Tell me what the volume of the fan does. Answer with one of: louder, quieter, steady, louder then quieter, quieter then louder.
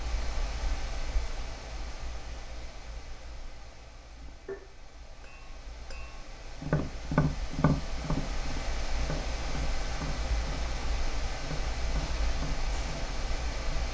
quieter then louder.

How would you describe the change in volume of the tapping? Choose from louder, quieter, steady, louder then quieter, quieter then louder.
louder then quieter.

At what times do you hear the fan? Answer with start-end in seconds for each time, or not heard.
0.0-13.8.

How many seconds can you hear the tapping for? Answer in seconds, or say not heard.
10 s.